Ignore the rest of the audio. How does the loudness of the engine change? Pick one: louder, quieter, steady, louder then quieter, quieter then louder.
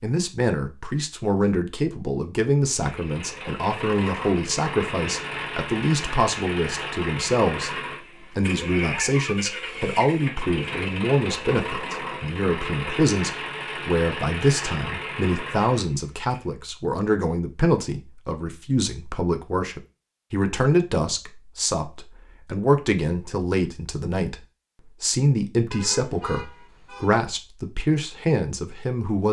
steady.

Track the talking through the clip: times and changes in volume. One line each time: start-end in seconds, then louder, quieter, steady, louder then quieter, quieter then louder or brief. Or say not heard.
0.0-29.2 steady.